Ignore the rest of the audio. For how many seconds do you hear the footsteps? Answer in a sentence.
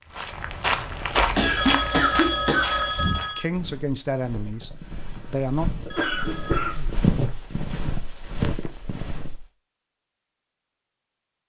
The footsteps can be heard for 9 seconds in total.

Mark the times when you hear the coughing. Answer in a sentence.
You can hear the coughing from 1.4 to 2.8 s and from 5.8 to 7.0 s.